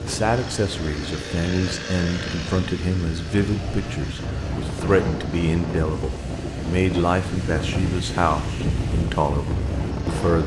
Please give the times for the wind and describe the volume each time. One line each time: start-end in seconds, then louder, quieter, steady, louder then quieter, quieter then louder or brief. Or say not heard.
0.0-10.4 louder.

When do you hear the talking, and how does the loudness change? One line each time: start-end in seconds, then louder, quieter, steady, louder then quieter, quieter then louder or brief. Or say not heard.
0.0-10.4 steady.